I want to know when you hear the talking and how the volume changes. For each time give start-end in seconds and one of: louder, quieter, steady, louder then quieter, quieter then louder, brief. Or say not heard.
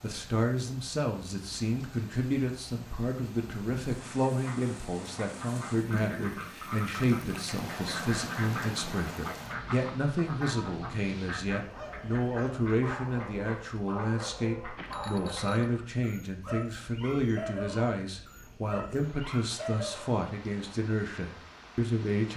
0.0-22.3 steady.